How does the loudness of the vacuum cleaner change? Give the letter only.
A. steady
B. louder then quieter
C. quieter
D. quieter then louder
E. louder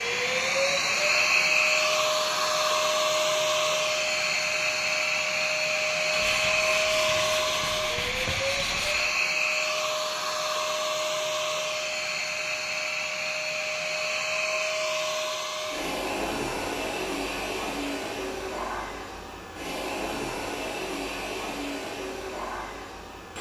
C.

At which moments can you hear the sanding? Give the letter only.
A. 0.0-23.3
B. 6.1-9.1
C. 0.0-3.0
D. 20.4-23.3
B.